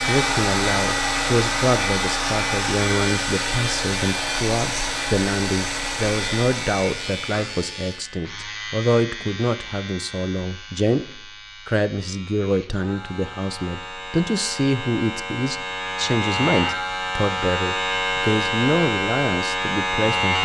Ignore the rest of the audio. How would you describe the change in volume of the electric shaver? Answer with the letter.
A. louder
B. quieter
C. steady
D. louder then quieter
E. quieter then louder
E.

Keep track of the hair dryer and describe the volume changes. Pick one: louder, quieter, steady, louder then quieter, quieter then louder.
quieter.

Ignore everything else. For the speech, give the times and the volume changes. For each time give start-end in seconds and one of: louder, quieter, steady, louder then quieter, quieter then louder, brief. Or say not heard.
0.0-20.4 steady.